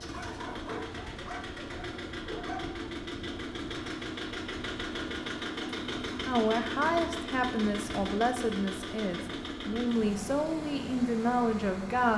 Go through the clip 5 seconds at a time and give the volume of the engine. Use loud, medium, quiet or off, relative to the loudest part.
loud, loud, medium.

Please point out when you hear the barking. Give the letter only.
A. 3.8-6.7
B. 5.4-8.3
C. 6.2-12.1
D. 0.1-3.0
D.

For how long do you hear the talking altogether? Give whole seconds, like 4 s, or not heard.
6 s.